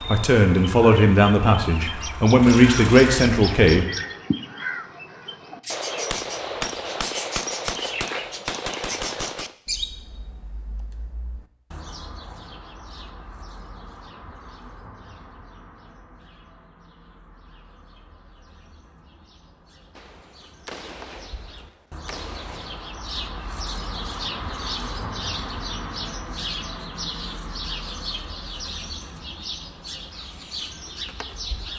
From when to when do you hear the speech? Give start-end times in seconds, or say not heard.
0.1-3.9.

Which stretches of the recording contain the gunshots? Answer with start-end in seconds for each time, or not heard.
5.7-9.6, 19.9-22.9.